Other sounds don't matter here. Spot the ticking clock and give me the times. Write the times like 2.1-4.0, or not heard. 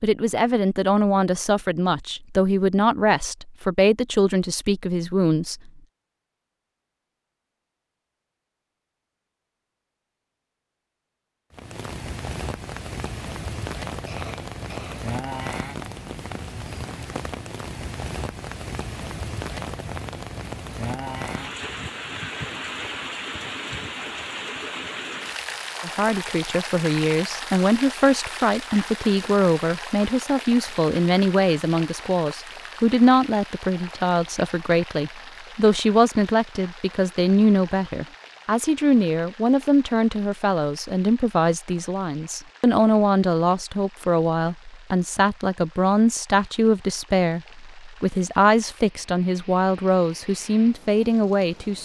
not heard.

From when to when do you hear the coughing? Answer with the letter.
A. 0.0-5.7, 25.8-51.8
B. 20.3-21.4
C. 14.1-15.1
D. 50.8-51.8
C.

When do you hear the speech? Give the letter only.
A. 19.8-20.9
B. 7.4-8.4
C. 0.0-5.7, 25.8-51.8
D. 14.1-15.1
C.